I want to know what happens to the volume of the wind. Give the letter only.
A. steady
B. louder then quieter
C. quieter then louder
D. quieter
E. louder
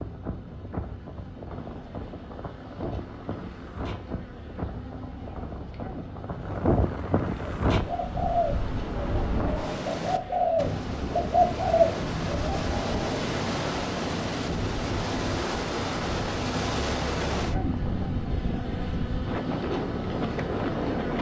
E.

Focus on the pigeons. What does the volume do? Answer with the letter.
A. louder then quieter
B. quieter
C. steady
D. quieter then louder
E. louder
D.